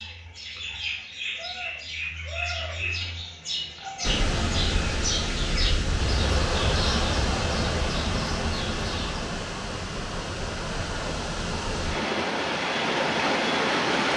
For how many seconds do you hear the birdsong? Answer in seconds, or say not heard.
9 s.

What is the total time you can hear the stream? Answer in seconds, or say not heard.
10 s.